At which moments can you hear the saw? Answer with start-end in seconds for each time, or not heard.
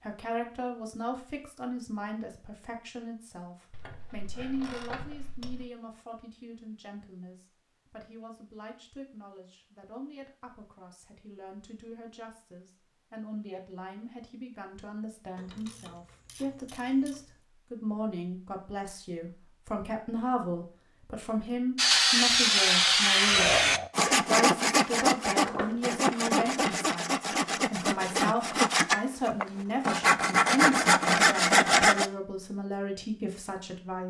21.8-32.1.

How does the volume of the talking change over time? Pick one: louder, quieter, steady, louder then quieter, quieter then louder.
quieter then louder.